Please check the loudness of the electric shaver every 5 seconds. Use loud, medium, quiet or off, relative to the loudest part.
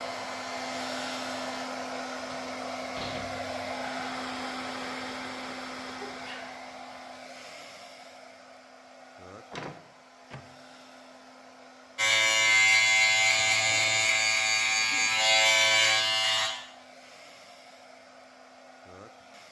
quiet, off, loud, loud.